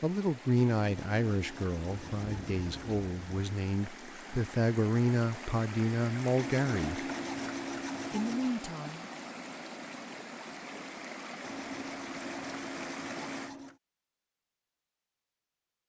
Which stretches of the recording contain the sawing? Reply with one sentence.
You can hear the sawing from 0.8 to 3.0 s, from 6.3 to 8.6 s and from 11.4 to 13.8 s.